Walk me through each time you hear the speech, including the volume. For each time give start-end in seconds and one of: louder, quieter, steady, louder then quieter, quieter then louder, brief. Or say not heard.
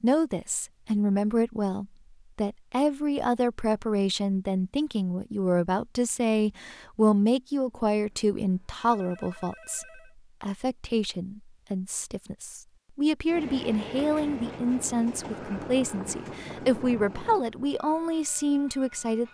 0.0-19.2 steady.